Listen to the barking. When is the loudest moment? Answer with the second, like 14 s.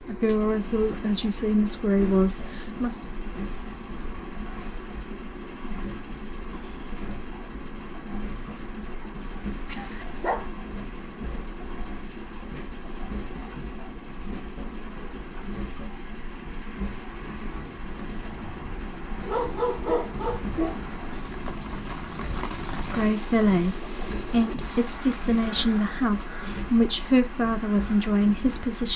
20 s.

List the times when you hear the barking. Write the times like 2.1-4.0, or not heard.
9.7-10.5, 19.2-20.8.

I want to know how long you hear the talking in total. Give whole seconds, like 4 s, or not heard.
9 s.